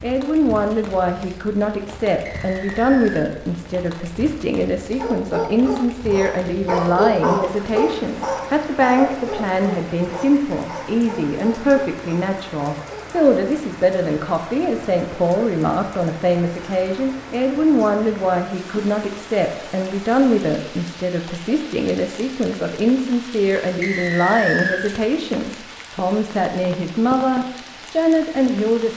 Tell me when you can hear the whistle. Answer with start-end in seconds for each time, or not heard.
2.2-3.2, 23.8-24.9.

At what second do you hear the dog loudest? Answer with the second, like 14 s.
7 s.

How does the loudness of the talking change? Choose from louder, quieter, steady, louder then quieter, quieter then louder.
steady.